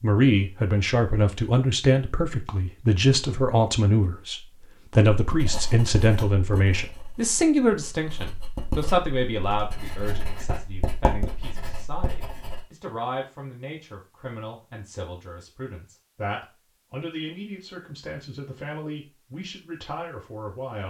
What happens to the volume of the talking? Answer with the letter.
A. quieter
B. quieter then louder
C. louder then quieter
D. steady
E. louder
A.